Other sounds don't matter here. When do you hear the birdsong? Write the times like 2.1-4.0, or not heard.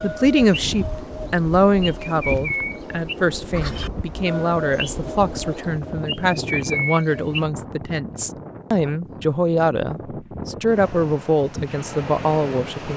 0.0-7.5.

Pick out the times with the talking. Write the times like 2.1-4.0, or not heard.
0.0-12.9.